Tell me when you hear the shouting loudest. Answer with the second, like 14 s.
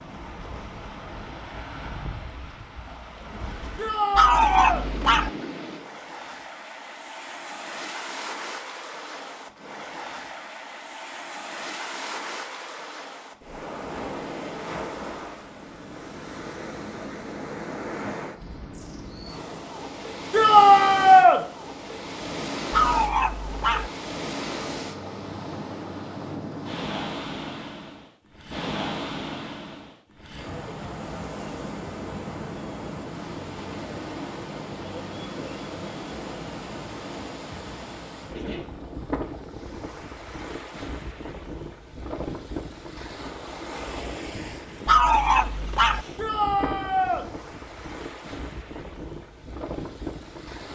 21 s.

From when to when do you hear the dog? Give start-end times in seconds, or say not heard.
4.2-5.3, 22.7-23.9, 44.9-46.0.